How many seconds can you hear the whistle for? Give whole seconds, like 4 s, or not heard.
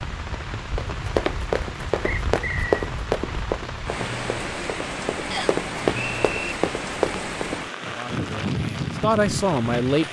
2 s.